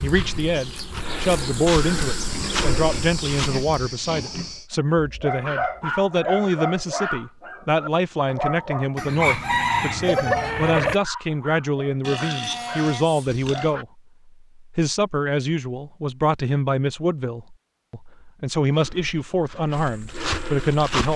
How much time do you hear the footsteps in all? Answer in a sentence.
You can hear the footsteps for 6 seconds altogether.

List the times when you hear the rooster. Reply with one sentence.
The rooster can be heard from 8.9 to 11.0 s.